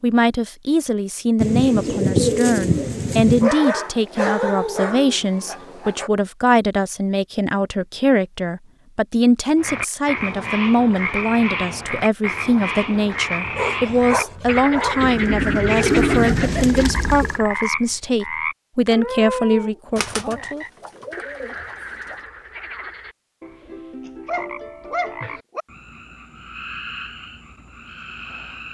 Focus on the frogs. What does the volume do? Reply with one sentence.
The loudness of the frogs goes down.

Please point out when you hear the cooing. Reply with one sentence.
You can hear the cooing from 1.4 to 3.5 s, from 15.0 to 17.4 s and from 19.9 to 22.1 s.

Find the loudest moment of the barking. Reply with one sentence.
The loudest moment of the barking is at 4 seconds.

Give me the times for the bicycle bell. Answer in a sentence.
The bicycle bell can't be heard in this clip.